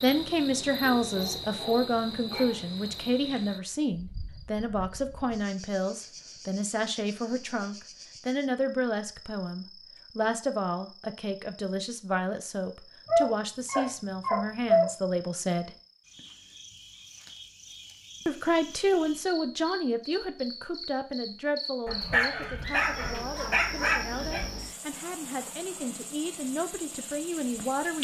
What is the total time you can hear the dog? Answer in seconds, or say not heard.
6 s.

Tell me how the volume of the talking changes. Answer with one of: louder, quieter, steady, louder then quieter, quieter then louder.
quieter.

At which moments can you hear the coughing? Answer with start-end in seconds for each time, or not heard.
not heard.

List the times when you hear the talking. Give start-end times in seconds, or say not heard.
0.0-15.8, 18.2-27.9.